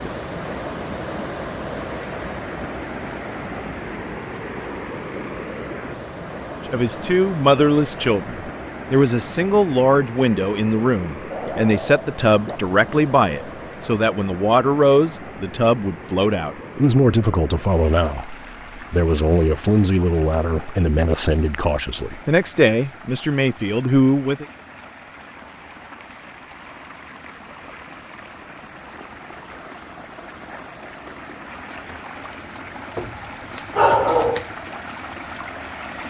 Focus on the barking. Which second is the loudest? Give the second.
34 s.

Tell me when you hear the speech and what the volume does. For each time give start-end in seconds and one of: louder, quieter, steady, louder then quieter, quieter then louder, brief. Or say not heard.
6.7-24.4 steady.